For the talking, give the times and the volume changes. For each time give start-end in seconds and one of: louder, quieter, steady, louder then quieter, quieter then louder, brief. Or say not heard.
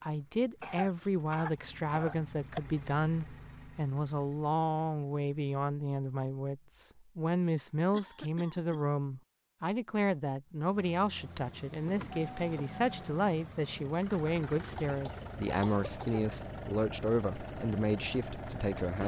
0.0-19.0 steady.